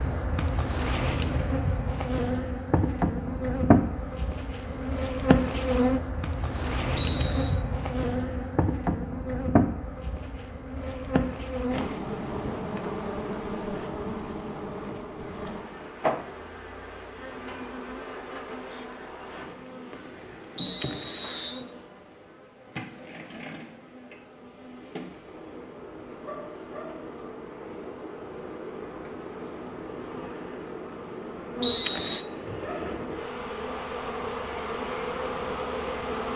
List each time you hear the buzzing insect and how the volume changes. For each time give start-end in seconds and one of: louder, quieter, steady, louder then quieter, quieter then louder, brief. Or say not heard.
0.0-36.3 quieter then louder.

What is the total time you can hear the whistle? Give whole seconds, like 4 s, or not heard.
2 s.